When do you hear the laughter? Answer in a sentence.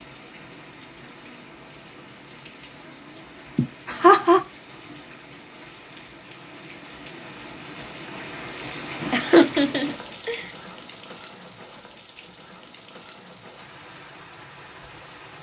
You can hear the laughter from 3.5 to 4.4 s and from 9.1 to 10.4 s.